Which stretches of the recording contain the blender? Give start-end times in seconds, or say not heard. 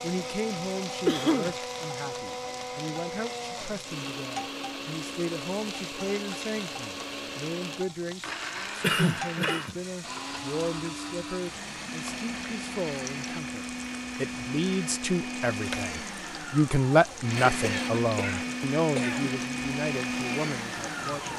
0.0-21.3.